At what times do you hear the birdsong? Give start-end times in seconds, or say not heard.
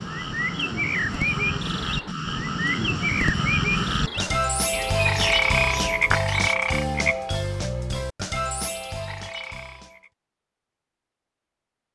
0.0-6.5.